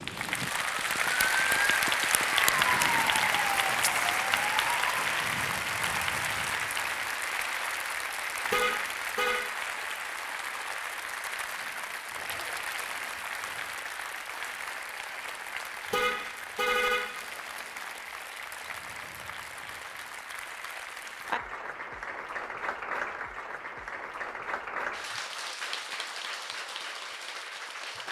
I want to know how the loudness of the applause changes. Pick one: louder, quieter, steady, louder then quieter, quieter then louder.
quieter.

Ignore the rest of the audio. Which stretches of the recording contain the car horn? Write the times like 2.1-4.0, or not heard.
8.4-9.4, 15.8-17.0.